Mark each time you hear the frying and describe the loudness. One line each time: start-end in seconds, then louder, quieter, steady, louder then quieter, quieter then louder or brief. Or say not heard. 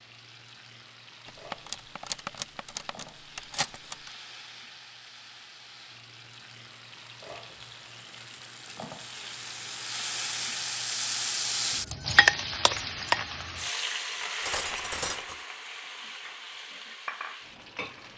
0.0-18.1 louder then quieter.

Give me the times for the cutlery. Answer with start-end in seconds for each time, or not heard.
1.5-4.0, 14.4-15.3.